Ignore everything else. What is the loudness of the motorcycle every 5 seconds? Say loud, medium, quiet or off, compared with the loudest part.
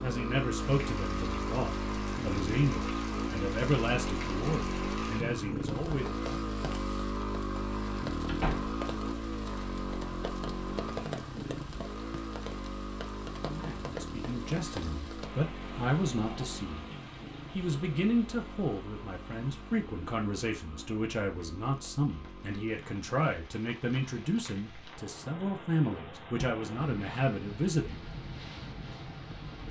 loud, loud, medium, medium, quiet, quiet.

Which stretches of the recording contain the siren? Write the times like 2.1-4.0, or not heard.
not heard.